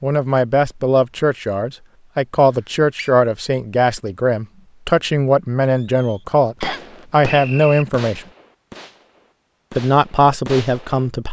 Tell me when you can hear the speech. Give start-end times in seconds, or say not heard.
0.0-8.2, 9.7-11.2.